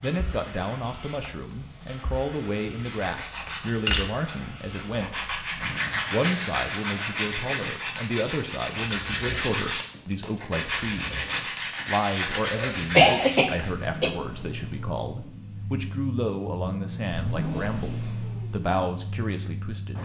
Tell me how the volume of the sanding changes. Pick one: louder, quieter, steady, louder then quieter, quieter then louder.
steady.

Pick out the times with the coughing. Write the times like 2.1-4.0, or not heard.
12.2-14.1.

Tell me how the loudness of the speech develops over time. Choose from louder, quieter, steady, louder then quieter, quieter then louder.
steady.